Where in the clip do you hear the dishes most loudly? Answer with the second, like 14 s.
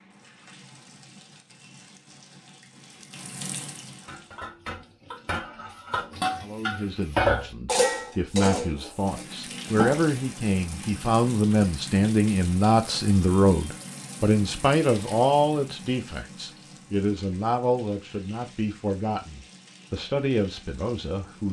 7 s.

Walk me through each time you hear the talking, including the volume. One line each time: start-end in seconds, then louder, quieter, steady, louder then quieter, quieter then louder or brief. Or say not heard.
6.4-21.4 louder then quieter.